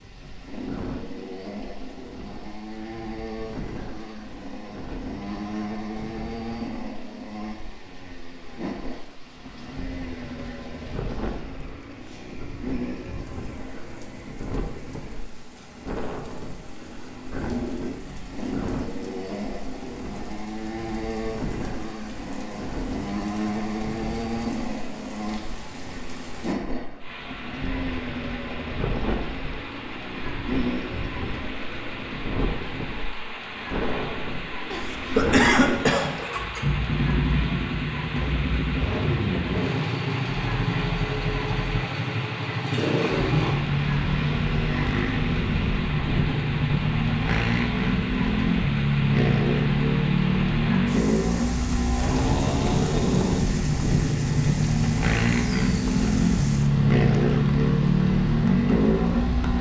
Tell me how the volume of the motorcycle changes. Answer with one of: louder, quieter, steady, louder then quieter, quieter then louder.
louder.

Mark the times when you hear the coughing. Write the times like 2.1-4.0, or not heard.
34.7-36.2.